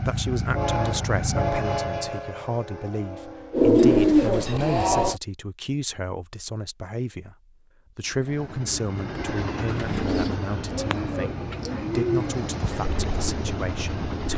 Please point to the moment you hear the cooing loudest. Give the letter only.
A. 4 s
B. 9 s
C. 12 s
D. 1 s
A.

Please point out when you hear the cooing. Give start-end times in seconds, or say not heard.
3.5-5.2, 9.7-14.3.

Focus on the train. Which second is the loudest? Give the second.
1 s.